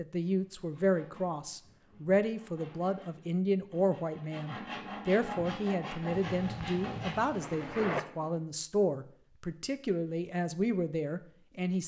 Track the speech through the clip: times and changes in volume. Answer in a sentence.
The speech can be heard from 0.0 to 11.8 s, at a steady volume.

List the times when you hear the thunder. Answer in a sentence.
The thunder can be heard from 6.1 to 8.0 s.